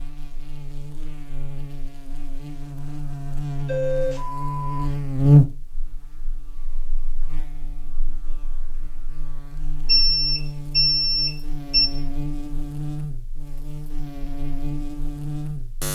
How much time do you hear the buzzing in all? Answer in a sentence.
The buzzing can be heard for 16 seconds in total.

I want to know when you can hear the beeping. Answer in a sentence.
You can hear the beeping from 3.6 to 5.0 s and from 9.8 to 11.8 s.